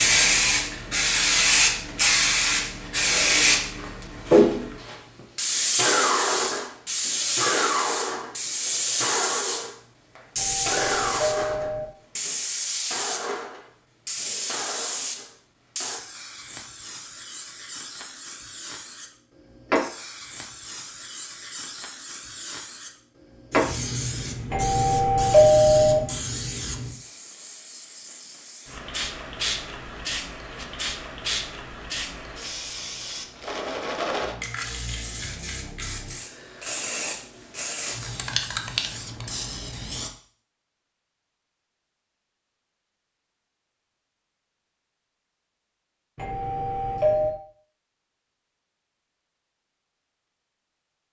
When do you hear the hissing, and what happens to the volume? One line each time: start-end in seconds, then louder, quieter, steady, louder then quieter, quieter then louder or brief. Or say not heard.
0.0-40.1 quieter.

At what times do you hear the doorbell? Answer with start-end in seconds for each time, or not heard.
10.3-11.8, 24.5-26.0, 46.1-47.4.